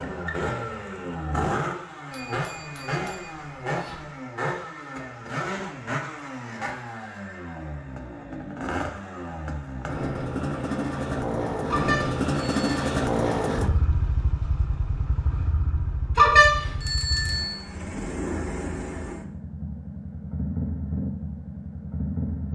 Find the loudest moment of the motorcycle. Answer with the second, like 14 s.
13 s.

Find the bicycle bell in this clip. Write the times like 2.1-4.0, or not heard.
2.1-4.1, 11.7-12.8, 16.1-17.6.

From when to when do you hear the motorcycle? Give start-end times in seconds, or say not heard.
0.0-22.5.